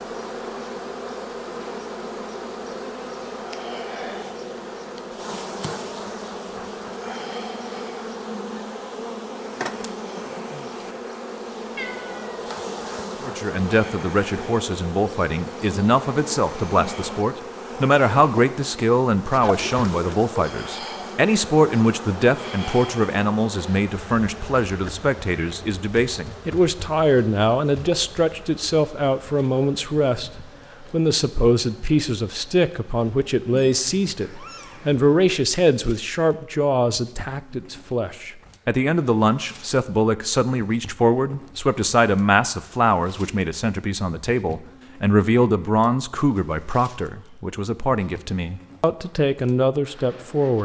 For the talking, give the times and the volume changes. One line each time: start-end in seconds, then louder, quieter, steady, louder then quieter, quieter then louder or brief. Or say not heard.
13.2-50.5 steady.